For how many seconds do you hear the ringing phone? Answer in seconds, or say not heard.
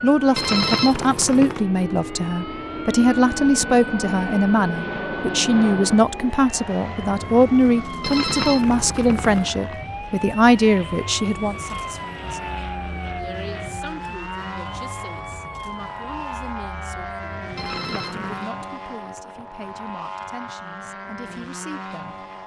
4 s.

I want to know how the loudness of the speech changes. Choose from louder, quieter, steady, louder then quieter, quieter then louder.
quieter.